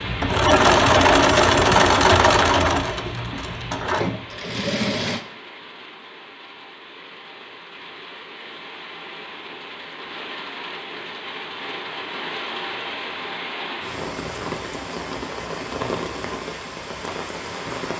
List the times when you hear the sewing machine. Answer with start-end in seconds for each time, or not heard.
0.0-5.2.